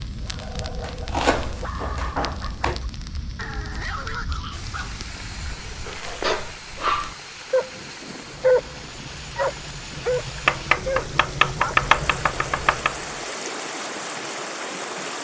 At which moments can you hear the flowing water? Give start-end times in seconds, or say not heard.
4.5-15.1.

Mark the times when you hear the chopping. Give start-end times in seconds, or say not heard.
0.8-2.8, 6.0-7.6, 10.4-12.9.